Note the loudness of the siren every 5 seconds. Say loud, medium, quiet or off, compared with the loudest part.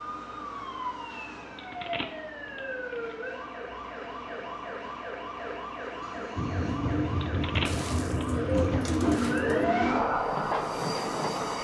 medium, loud, loud.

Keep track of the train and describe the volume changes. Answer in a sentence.
The loudness of the train goes down, then up.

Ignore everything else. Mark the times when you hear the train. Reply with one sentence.
The train can be heard from 6.3 to 11.5 s.